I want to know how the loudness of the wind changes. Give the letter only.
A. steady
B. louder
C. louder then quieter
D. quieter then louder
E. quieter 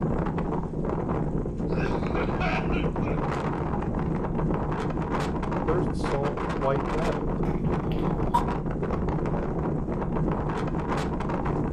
A.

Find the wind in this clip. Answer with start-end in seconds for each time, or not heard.
0.0-11.6.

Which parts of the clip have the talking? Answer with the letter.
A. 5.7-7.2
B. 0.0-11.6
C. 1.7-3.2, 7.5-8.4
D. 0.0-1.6
A.